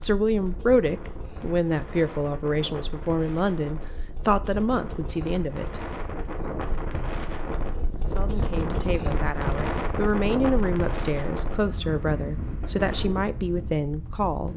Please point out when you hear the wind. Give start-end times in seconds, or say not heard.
0.0-14.5.